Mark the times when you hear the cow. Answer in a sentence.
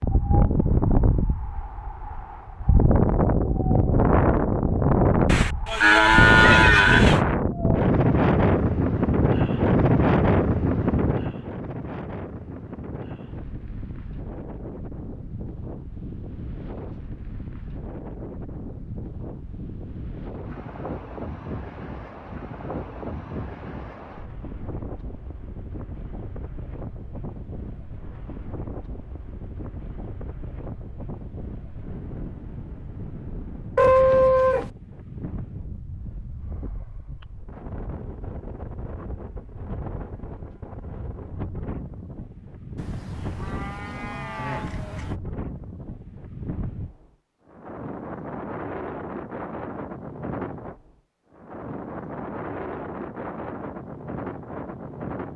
You can hear the cow from 5.2 to 7.2 s, from 33.8 to 34.7 s and from 42.8 to 45.1 s.